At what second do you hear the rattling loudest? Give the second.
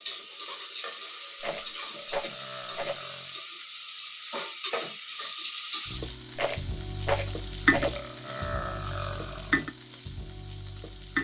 7 s.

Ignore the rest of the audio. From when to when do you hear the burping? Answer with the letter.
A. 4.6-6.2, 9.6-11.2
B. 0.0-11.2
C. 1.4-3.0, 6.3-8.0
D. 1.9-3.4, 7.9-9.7
D.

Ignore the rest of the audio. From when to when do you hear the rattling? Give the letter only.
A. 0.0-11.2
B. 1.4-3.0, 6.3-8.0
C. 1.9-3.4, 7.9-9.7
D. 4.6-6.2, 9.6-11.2
B.